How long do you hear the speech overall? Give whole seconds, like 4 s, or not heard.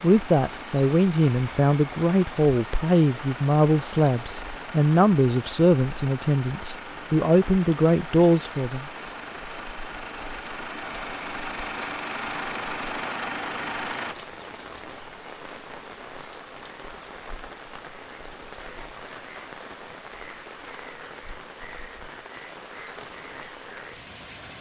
9 s.